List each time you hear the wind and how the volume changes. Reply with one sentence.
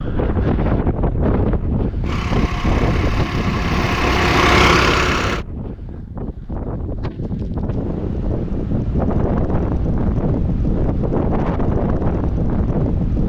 You can hear the wind from 0.0 to 13.2 s, getting quieter then louder.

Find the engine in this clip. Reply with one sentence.
The engine can be heard from 2.0 to 5.5 s.